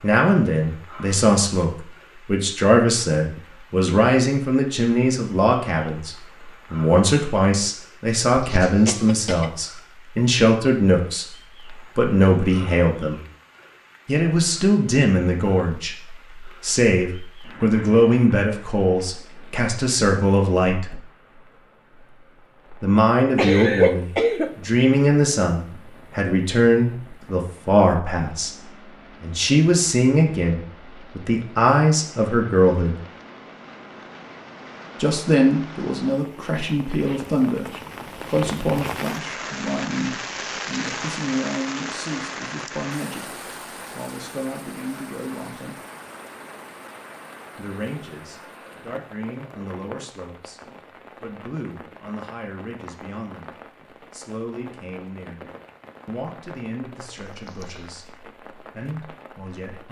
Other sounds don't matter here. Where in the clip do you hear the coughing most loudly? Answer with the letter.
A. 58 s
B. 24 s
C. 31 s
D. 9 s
B.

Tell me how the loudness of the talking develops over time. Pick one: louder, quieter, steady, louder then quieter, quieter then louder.
quieter.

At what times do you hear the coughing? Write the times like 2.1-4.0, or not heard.
8.3-9.4, 23.4-24.6, 57.1-57.9.